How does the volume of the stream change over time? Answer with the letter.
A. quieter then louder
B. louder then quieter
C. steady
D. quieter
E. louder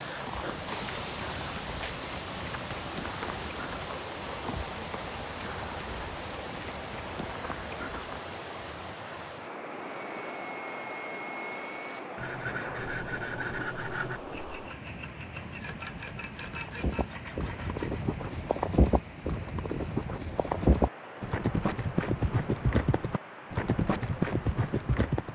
D.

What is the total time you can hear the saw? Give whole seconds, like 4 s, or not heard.
8 s.